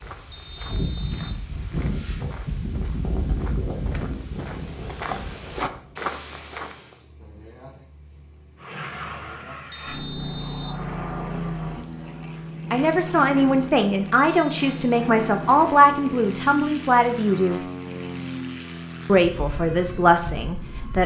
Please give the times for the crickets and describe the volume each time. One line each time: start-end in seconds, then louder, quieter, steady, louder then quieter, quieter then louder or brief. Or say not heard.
0.0-11.9 quieter.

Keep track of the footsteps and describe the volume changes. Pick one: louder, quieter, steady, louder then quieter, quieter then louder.
louder.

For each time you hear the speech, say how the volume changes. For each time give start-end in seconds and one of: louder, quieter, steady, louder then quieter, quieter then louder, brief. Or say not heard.
12.7-17.6 steady
19.1-21.0 brief.